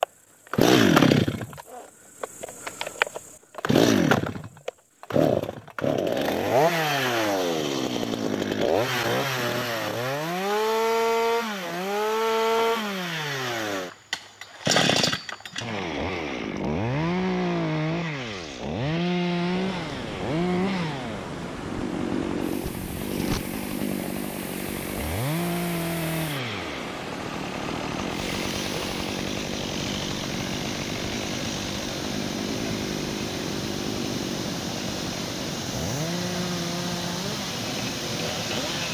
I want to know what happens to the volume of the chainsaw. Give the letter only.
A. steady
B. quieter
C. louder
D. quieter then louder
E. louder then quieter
B.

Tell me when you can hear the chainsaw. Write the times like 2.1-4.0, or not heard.
0.0-38.8.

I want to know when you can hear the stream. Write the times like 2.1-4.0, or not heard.
19.3-38.8.